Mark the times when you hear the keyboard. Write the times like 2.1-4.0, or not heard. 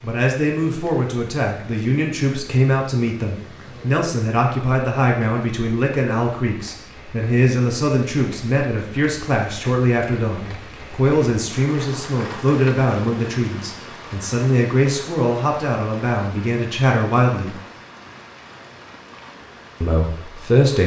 not heard.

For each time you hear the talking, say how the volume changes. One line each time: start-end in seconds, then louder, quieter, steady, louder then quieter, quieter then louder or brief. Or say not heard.
0.0-17.6 steady
19.8-20.8 brief.